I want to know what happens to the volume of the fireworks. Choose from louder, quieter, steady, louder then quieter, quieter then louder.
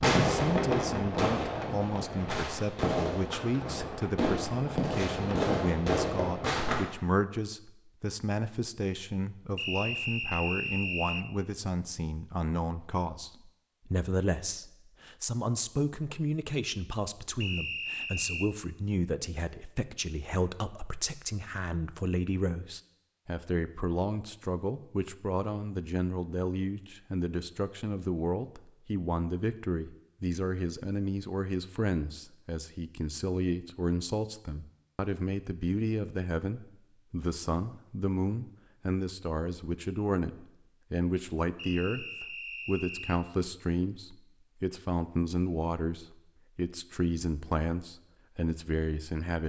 quieter then louder.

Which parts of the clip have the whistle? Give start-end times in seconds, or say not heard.
9.6-11.2, 17.4-18.5, 41.5-43.2.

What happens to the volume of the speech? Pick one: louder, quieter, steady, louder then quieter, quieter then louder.
steady.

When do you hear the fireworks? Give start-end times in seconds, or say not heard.
0.0-6.8.